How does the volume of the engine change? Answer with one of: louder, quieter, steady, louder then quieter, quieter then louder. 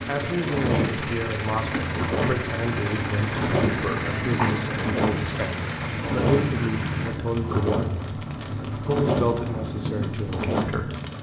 steady.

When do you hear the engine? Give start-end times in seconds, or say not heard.
0.0-7.2.